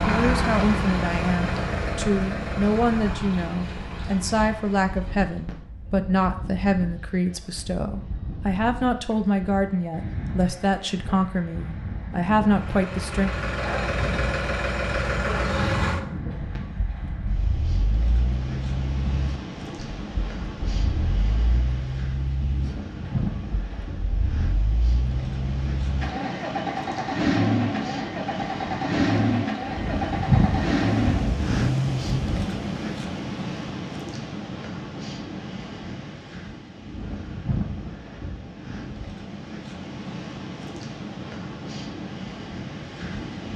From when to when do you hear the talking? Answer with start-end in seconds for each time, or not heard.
0.0-13.3.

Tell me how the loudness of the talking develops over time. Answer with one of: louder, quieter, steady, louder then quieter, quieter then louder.
steady.